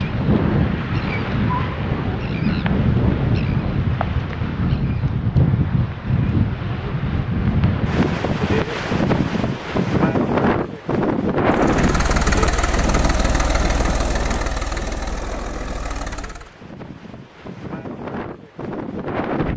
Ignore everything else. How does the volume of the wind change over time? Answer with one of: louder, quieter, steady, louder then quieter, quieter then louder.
quieter.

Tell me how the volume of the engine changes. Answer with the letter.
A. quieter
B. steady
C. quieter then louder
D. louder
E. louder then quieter
A.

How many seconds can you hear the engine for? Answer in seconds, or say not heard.
5 s.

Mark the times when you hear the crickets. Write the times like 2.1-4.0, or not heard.
not heard.